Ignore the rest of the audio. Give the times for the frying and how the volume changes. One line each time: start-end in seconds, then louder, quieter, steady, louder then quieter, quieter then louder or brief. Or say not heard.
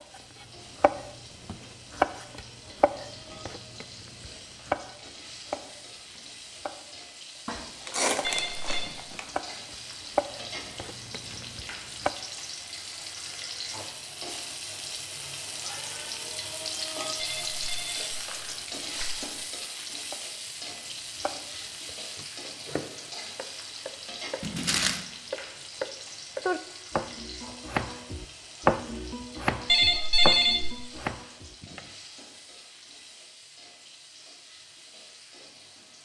0.0-36.0 louder then quieter.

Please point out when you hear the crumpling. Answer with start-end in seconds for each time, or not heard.
7.5-9.3, 18.1-18.7, 24.4-25.1.